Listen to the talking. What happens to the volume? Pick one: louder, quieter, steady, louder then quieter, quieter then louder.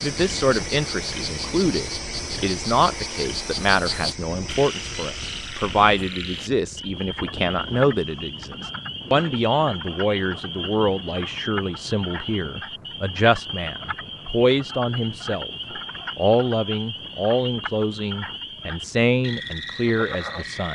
steady.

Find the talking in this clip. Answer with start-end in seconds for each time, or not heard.
0.0-15.5, 16.1-20.7.